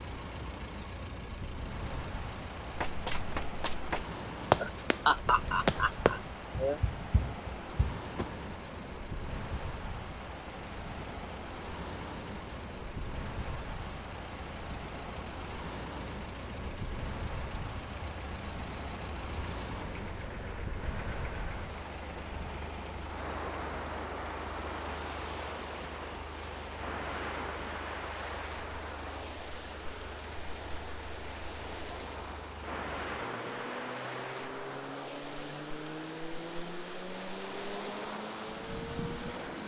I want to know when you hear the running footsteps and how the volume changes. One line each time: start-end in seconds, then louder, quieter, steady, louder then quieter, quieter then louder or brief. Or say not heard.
2.7-8.3 louder then quieter.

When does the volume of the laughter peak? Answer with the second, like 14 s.
5 s.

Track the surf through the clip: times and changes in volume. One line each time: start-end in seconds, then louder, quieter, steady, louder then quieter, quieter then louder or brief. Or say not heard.
0.0-39.6 steady.